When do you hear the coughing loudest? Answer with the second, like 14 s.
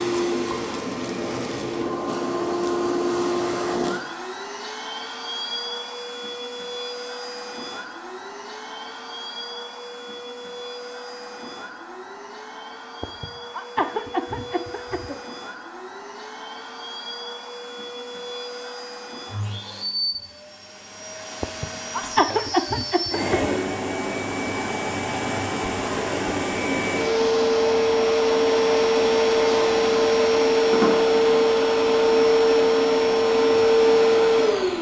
22 s.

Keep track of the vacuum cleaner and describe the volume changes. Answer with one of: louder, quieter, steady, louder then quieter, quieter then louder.
quieter then louder.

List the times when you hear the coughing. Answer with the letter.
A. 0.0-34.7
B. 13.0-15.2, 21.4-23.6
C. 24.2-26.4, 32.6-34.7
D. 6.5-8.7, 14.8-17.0
B.